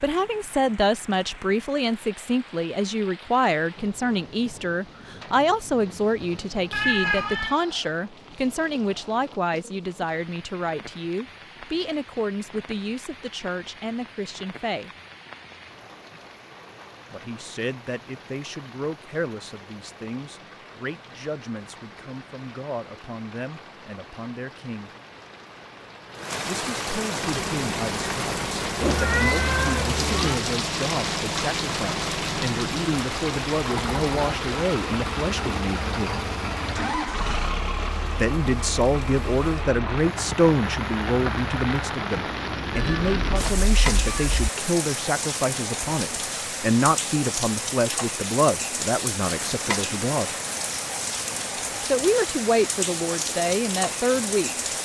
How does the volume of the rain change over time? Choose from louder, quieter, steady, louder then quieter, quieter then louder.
louder.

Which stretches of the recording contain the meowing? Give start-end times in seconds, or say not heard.
6.7-7.5, 28.8-30.4, 42.7-44.5.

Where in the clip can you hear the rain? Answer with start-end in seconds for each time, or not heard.
0.0-54.8.